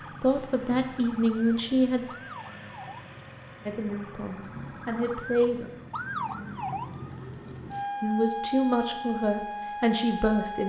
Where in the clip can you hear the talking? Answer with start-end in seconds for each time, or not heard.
0.0-2.1, 3.6-5.7, 8.0-10.6.